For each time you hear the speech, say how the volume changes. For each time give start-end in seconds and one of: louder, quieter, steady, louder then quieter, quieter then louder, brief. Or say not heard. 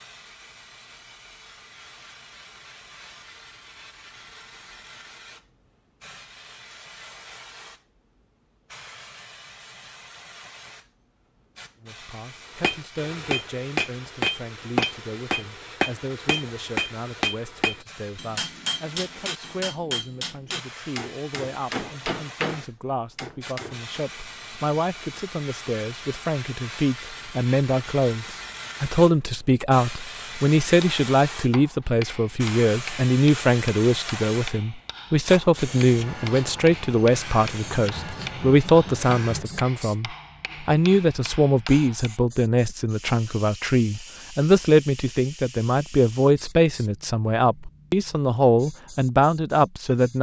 11.8-50.1 louder.